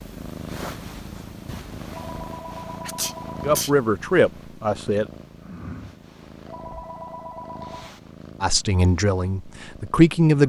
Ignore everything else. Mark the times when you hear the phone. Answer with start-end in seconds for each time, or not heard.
1.9-3.6, 6.5-8.0.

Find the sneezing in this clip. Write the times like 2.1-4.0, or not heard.
2.9-3.7.